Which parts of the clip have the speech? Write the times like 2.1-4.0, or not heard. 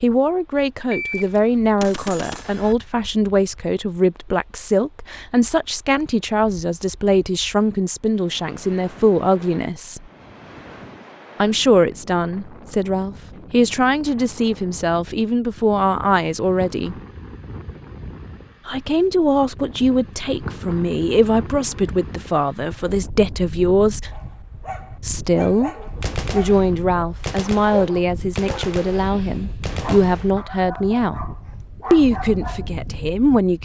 0.0-10.1, 11.4-16.9, 18.6-24.1, 25.0-25.7, 26.3-31.2, 31.9-33.5.